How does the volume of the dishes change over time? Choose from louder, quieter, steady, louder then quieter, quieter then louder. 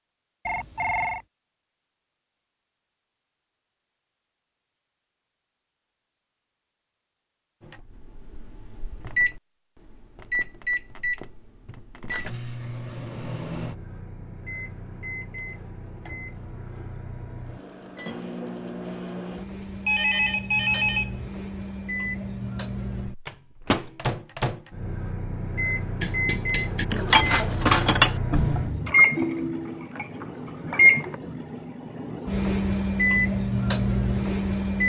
quieter.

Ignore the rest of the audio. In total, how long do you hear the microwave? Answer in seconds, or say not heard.
27 s.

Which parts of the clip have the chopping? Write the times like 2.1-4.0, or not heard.
not heard.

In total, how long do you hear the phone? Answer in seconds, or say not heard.
3 s.